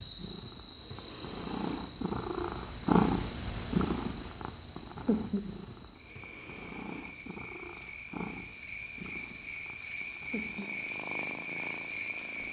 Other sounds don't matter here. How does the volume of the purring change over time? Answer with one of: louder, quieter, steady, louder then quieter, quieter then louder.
louder then quieter.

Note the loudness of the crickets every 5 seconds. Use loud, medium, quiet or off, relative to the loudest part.
loud, medium, loud.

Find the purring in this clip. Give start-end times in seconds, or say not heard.
0.0-12.4.